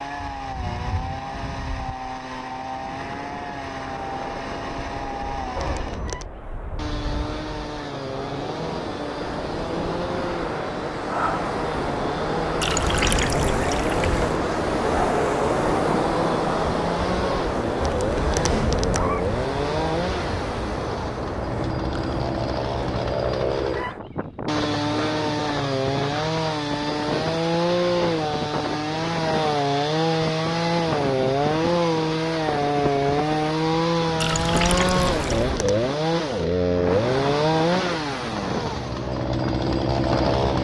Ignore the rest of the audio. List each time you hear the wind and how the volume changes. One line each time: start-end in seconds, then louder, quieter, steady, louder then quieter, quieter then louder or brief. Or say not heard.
0.0-40.5 louder then quieter.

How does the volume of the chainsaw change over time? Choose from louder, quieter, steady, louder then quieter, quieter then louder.
louder.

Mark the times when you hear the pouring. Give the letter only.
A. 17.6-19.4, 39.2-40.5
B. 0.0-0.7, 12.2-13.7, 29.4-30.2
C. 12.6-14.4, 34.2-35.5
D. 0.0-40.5
C.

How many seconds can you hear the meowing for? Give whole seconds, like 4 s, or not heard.
3 s.